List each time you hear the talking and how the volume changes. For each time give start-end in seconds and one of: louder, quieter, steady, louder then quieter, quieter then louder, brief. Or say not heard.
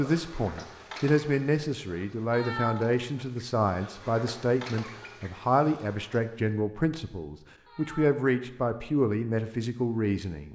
0.0-10.5 steady.